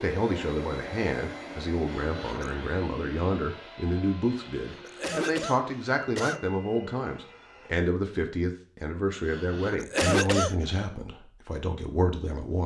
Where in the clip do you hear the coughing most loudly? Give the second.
10 s.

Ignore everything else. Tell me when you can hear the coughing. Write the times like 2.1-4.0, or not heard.
1.9-2.5, 4.5-6.5, 9.2-10.6.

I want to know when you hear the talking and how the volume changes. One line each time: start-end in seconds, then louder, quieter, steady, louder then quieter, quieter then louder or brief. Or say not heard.
0.0-12.6 steady.